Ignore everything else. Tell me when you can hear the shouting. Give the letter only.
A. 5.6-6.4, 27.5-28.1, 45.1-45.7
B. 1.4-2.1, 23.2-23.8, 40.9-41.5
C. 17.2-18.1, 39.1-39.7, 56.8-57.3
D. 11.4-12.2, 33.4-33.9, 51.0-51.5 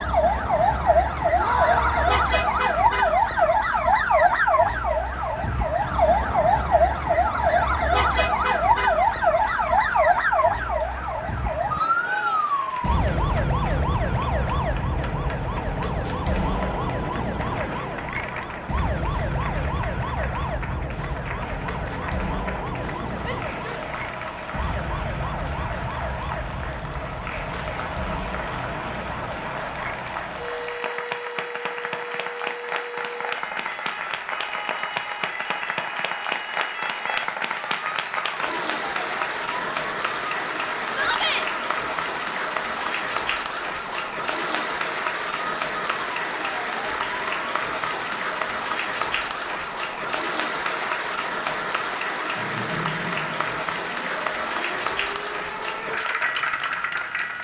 B.